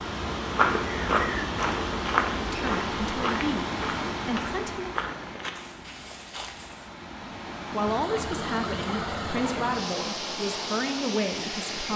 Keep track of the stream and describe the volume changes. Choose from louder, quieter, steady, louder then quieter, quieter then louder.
quieter then louder.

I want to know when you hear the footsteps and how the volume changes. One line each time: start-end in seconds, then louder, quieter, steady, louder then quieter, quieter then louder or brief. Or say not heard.
0.6-6.9 quieter.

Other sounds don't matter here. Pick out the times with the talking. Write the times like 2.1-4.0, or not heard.
2.5-4.9, 7.7-11.9.